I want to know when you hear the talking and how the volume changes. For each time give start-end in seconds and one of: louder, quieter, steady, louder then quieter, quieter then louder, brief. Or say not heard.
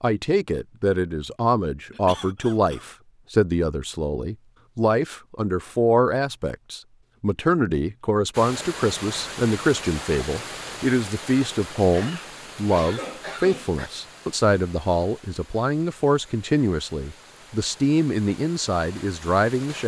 0.0-19.8 steady.